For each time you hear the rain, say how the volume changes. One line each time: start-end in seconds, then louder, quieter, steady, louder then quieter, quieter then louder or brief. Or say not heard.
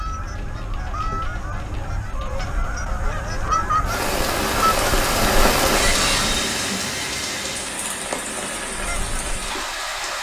0.0-10.1 louder then quieter.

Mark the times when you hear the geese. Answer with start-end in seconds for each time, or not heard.
0.0-6.3, 8.7-10.1.